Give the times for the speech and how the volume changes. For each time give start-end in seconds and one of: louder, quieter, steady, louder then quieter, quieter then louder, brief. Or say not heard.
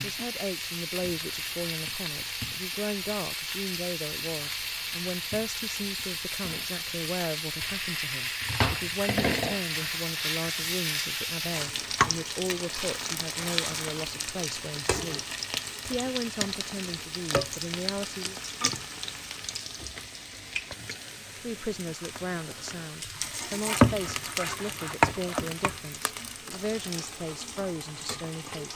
0.0-15.2 steady
15.8-18.4 brief
21.4-28.7 steady.